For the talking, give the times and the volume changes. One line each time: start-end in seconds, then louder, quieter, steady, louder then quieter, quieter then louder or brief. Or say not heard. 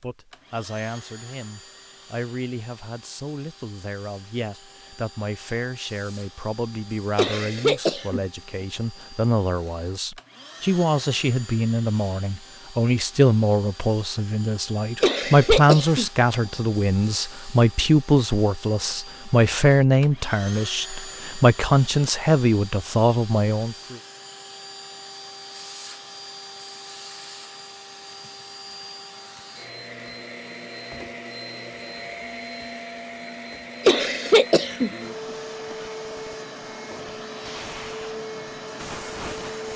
0.0-23.9 louder.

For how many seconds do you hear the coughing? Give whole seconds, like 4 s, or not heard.
3 s.